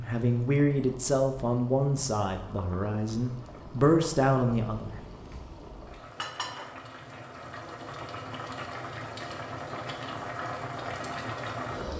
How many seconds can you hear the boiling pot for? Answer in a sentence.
The boiling pot can be heard for 12 seconds in total.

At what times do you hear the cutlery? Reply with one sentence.
You can't hear the cutlery here.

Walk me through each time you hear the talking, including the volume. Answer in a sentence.
You can hear the talking from 0.0 to 5.0 s, getting quieter then louder.